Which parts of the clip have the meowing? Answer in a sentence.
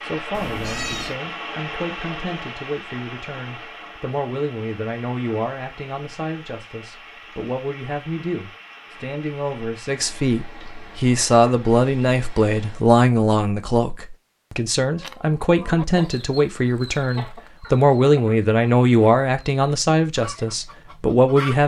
You can hear the meowing from 0.3 to 1.2 s.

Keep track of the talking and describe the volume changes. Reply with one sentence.
The volume of the talking goes up.